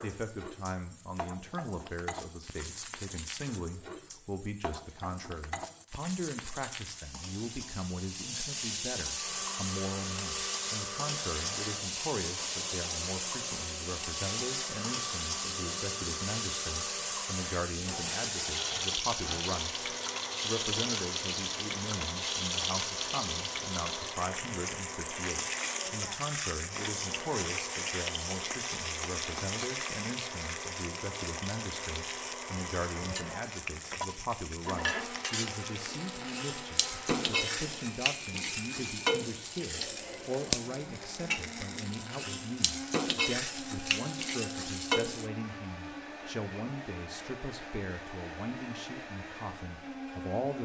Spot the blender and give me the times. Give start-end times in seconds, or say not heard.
9.1-50.6.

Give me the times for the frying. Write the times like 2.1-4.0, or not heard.
0.0-45.3.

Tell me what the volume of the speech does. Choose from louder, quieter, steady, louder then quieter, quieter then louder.
steady.